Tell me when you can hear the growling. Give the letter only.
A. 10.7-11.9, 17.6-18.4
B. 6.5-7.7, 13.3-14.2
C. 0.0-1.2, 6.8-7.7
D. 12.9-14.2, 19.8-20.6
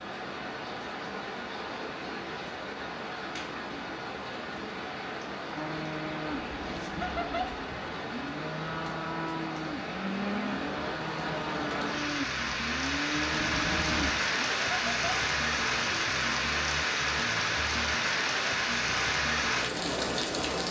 B.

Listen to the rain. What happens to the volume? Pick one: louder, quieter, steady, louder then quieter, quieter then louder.
louder.